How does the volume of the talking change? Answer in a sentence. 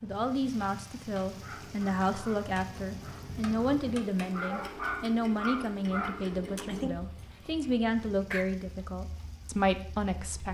The volume of the talking stays about the same.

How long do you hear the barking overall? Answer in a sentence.
The barking can be heard for 7 seconds in total.